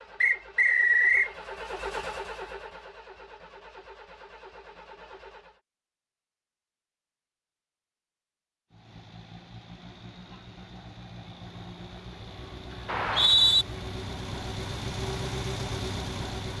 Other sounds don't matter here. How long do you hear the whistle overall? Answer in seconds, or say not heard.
2 s.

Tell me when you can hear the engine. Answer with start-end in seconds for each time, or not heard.
0.0-5.6, 8.7-16.5.